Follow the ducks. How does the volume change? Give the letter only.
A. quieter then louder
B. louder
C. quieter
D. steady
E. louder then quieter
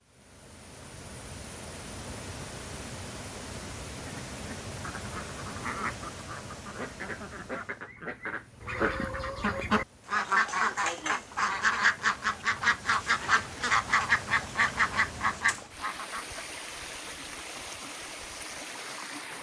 B.